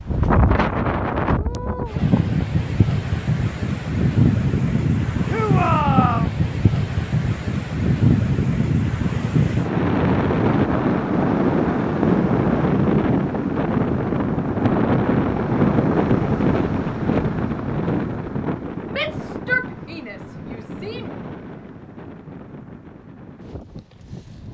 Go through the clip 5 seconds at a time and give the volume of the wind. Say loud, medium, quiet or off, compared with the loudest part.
loud, loud, loud, loud, quiet.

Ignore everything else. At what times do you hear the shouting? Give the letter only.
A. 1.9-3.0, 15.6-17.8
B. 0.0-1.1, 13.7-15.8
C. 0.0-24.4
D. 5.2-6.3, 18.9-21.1
D.